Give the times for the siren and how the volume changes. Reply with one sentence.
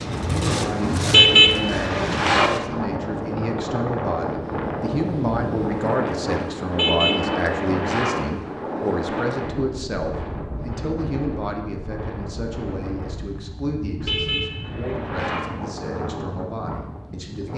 You can't hear the siren here.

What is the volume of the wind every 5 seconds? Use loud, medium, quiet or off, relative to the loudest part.
loud, loud, medium, medium.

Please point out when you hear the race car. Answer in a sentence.
You can hear the race car from 0.0 to 2.6 s.